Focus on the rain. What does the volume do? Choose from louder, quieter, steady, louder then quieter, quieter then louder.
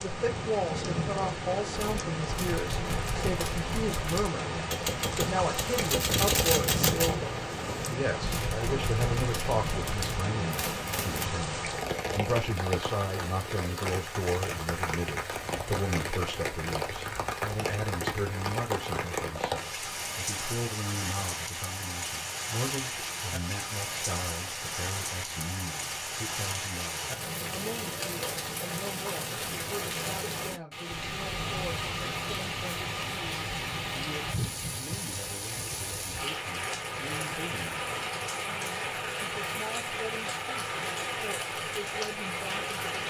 steady.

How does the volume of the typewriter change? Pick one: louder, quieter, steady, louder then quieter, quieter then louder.
louder then quieter.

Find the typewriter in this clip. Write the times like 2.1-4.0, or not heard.
1.8-11.3.